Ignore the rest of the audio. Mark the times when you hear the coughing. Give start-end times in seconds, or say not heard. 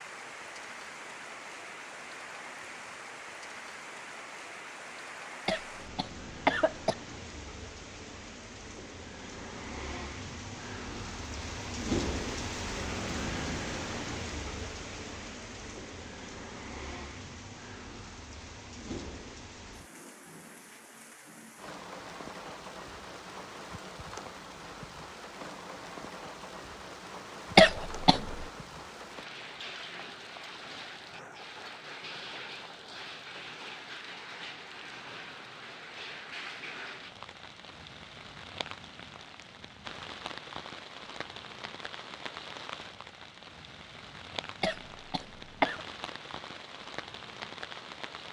5.5-7.0, 27.6-28.4, 44.6-45.8.